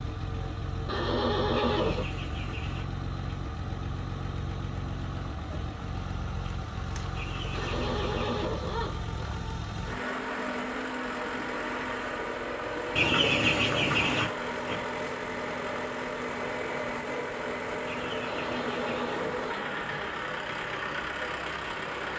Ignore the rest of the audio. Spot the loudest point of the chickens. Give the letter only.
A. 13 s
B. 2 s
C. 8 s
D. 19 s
A.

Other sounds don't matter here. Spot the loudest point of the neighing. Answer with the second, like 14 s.
2 s.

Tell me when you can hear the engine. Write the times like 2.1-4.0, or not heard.
0.0-22.1.